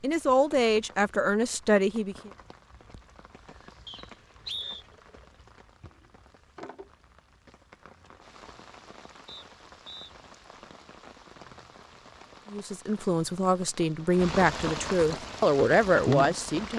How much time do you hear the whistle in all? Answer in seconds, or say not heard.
2 s.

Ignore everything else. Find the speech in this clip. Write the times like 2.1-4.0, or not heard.
0.0-2.3, 12.5-16.7.